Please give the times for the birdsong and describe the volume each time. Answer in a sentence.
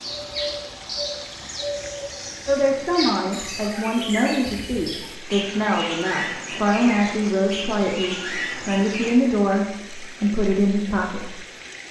You can hear the birdsong from 0.0 to 9.2 s, at a steady volume.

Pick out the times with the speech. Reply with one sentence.
The speech can be heard from 2.5 to 11.4 s.